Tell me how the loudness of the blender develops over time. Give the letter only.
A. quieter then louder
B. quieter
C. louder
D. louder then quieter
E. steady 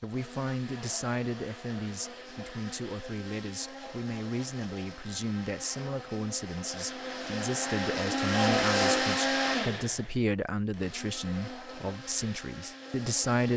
D.